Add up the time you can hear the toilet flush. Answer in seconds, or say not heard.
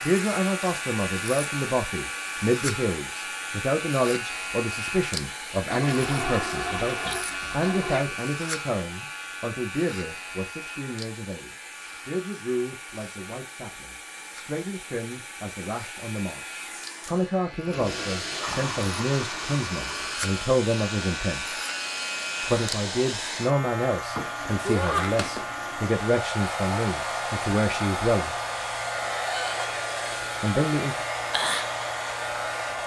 7 s.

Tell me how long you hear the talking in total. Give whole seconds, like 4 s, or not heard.
28 s.